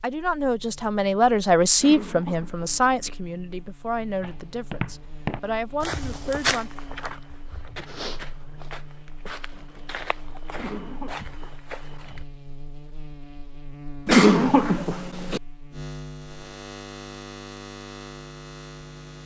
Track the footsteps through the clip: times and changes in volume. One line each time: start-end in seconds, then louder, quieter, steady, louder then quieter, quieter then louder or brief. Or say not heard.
4.2-12.2 quieter.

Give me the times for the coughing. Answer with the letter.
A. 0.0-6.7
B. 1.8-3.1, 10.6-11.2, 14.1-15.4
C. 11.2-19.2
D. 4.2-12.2
B.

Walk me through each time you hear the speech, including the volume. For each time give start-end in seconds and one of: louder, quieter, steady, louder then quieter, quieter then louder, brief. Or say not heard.
0.0-6.7 quieter.